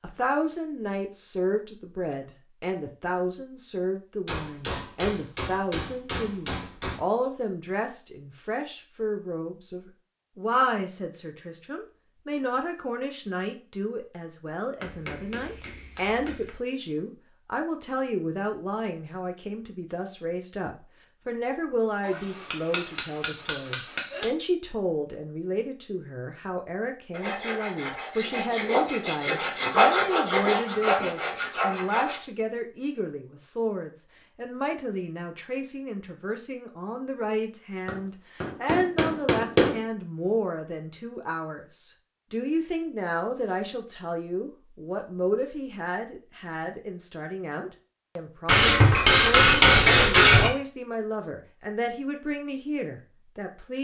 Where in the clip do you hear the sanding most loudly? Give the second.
30 s.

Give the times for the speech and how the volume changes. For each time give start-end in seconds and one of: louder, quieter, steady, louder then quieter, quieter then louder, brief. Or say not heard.
0.0-53.7 steady.